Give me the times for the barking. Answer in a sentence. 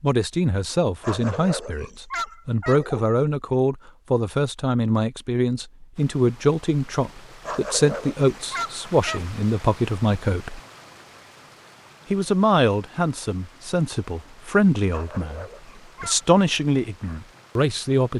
You can hear the barking from 1.0 to 3.0 s, from 7.5 to 9.2 s and from 14.9 to 16.3 s.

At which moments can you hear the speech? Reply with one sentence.
You can hear the speech from 0.0 to 10.6 s and from 12.1 to 18.1 s.